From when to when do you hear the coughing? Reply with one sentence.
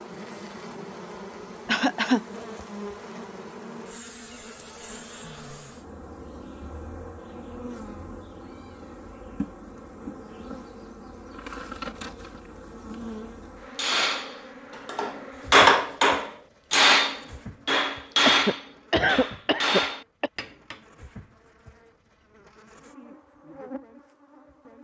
The coughing can be heard from 1.6 to 2.2 s and from 18.2 to 20.3 s.